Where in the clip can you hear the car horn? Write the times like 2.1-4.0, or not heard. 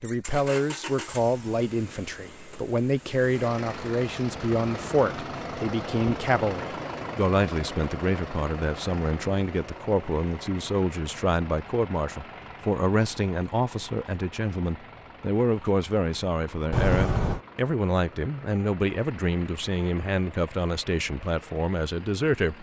16.7-17.4.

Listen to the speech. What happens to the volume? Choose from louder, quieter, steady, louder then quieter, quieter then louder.
steady.